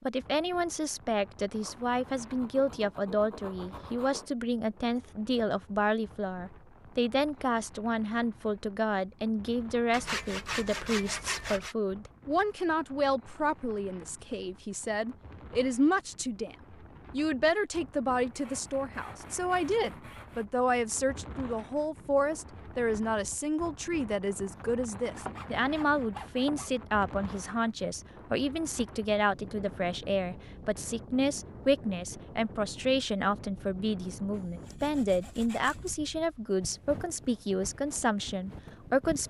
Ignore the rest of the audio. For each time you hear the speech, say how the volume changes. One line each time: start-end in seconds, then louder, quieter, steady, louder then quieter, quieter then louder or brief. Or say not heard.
0.0-39.2 steady.